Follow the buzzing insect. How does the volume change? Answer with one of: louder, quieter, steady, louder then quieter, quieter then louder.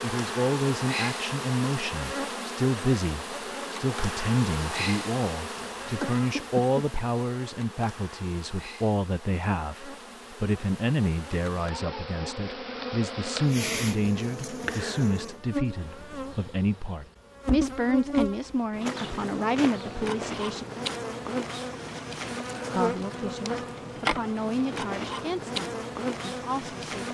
quieter then louder.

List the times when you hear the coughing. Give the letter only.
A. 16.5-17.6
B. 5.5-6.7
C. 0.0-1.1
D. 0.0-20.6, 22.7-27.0
B.